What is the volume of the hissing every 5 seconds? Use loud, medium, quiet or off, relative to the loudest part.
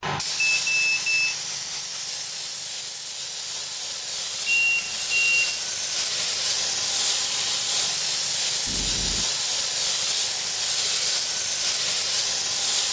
medium, loud, loud.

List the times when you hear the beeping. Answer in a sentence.
The beeping can be heard from 0.6 to 1.4 s, from 4.5 to 5.6 s and from 8.7 to 9.3 s.